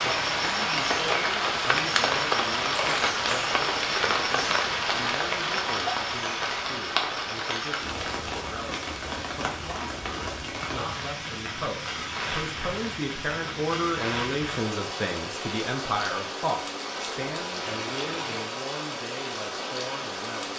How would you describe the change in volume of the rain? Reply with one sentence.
The volume of the rain goes down.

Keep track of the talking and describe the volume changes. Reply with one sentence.
The loudness of the talking goes up, then down.